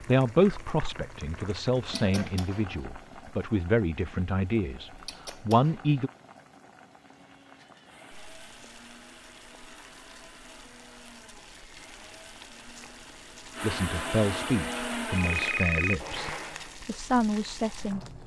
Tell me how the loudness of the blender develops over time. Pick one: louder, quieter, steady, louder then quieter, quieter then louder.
louder.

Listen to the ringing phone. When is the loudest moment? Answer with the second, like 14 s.
16 s.